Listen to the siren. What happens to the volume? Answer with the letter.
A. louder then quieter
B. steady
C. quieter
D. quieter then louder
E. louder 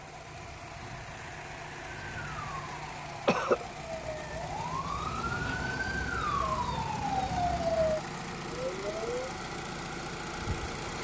E.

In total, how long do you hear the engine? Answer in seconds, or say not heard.
11 s.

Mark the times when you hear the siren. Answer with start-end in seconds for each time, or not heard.
1.8-9.3.